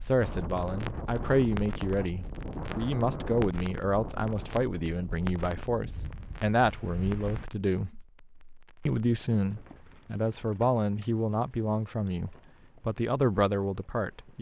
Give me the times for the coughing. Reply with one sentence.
The coughing can't be heard in this clip.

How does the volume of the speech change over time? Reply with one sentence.
The volume of the speech stays about the same.